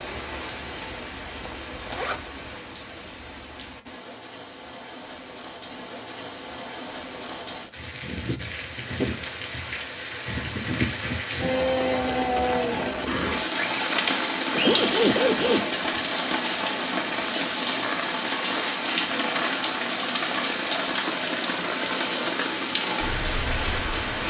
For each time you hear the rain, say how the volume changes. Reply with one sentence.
You can hear the rain from 0.0 to 24.2 s, getting louder.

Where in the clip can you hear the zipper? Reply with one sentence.
You can hear the zipper from 1.4 to 2.5 s and from 14.5 to 15.7 s.